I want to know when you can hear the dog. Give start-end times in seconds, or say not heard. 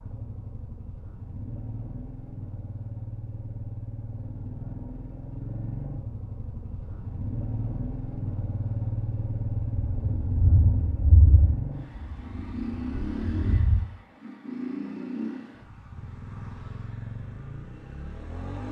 not heard.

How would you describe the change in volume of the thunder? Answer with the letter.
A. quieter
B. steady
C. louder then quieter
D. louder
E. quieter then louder
E.